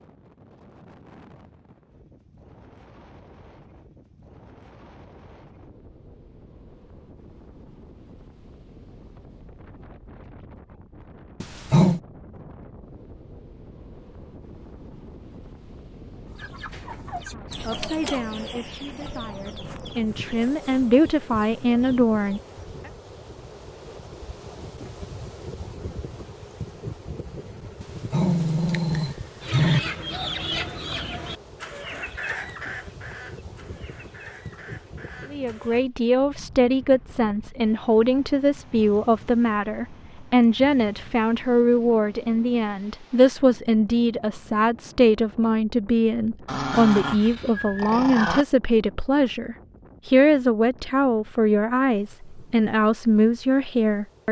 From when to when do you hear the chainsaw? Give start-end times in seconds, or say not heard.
not heard.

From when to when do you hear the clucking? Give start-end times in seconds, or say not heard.
16.2-22.6, 29.4-35.8.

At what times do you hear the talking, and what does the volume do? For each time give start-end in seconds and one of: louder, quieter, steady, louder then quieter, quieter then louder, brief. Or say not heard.
17.4-22.4 quieter then louder
35.3-54.2 steady.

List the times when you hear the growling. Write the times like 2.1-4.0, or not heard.
11.4-12.0, 27.8-29.8, 46.5-48.5.